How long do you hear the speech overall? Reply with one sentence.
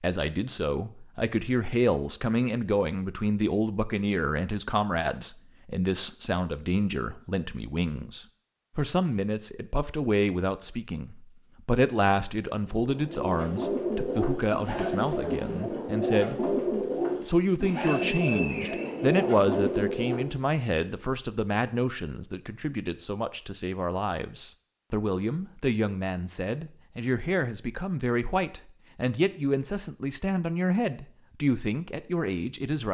The speech can be heard for 32 seconds in total.